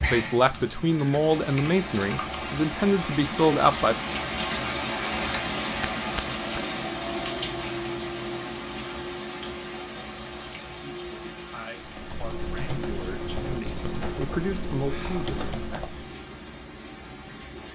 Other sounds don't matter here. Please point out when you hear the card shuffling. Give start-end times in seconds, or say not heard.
5.8-6.6.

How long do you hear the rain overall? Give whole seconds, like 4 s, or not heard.
18 s.